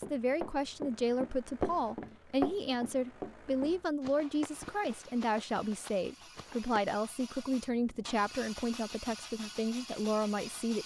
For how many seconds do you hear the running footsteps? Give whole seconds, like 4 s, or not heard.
7 s.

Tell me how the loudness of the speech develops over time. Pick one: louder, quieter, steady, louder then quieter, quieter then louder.
steady.